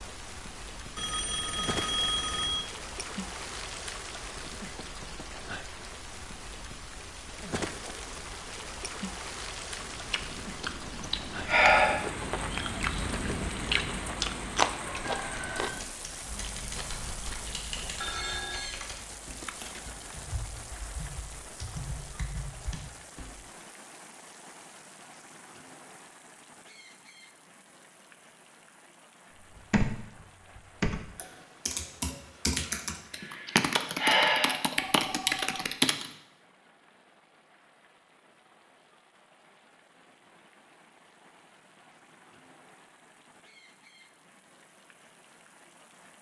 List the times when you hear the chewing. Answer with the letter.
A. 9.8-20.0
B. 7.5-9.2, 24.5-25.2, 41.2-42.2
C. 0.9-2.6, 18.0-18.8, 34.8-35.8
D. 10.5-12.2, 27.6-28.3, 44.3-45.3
A.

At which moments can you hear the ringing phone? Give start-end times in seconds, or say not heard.
0.9-2.6, 18.0-18.8, 34.8-35.8.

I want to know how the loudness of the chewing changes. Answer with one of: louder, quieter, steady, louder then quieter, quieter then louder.
louder then quieter.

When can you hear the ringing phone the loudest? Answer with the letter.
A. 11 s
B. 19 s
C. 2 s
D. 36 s
C.